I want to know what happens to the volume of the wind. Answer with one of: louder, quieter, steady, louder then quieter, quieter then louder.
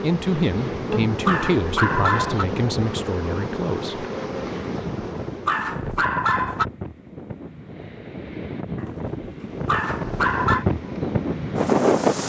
louder.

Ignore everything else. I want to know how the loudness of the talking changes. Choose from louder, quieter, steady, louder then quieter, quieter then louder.
quieter.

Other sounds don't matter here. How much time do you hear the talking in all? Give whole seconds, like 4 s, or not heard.
4 s.